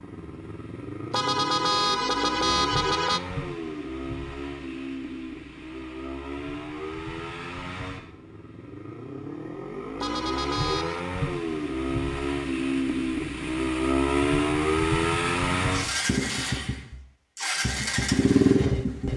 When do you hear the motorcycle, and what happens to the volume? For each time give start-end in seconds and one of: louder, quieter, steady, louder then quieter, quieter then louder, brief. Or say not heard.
0.0-19.1 louder.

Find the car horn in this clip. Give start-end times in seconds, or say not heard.
1.1-3.2, 10.0-11.0.